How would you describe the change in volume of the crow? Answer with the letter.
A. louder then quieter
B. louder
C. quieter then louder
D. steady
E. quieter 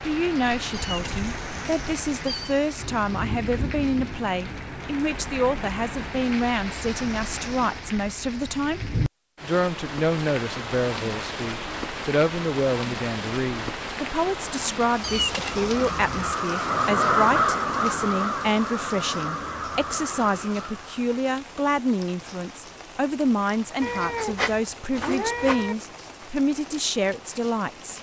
A.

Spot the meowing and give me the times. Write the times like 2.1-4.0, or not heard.
0.7-2.6, 15.0-16.4, 23.8-25.8.